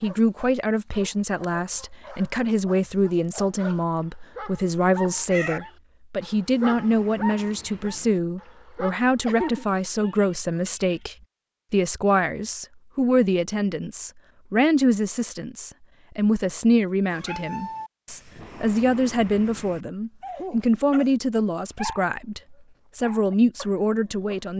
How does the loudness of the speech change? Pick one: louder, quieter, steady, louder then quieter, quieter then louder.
steady.